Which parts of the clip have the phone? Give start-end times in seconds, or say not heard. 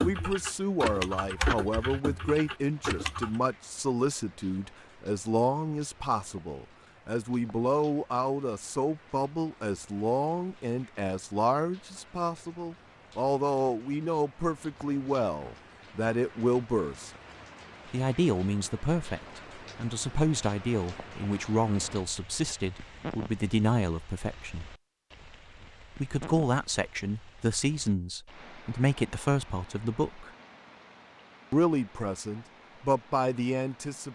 not heard.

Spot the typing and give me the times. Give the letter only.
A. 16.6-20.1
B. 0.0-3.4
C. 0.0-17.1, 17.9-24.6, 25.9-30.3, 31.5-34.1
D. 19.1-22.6
B.